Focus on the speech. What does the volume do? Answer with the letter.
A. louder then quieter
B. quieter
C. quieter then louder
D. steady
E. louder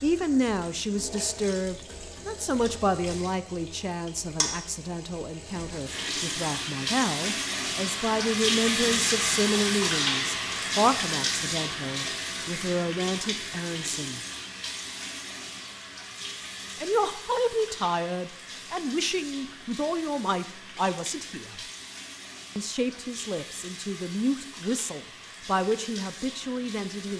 D.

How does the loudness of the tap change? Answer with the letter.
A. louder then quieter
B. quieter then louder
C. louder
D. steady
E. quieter
A.